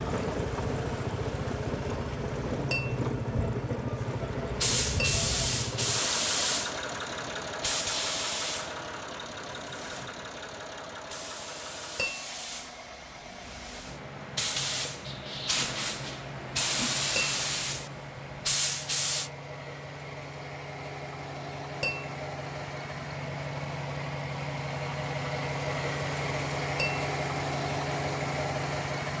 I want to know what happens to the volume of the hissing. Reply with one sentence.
The loudness of the hissing goes down, then up.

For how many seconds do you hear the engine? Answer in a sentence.
The engine can be heard for 29 seconds in total.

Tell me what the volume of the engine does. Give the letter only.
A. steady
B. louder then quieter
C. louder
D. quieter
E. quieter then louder
E.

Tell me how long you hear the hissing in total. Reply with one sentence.
The hissing can be heard for 15 seconds in total.